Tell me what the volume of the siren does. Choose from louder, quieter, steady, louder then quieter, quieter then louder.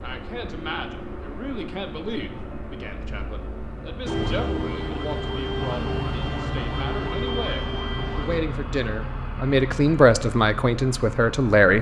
steady.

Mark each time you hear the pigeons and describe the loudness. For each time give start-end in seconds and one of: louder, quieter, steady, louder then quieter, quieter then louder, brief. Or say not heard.
not heard.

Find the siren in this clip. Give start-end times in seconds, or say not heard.
4.0-8.4.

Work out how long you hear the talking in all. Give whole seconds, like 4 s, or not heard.
12 s.